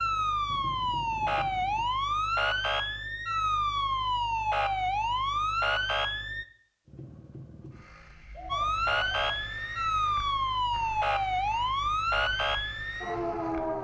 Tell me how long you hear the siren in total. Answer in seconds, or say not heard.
12 s.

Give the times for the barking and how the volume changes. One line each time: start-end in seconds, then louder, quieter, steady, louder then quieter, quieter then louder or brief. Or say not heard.
not heard.